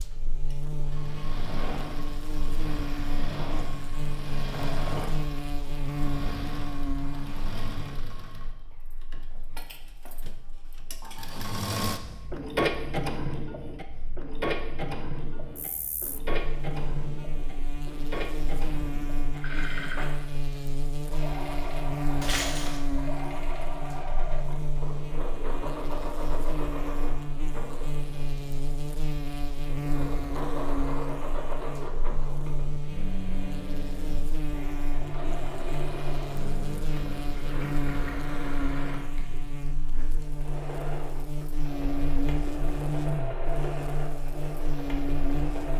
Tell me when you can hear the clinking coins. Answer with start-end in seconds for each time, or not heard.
22.2-22.8.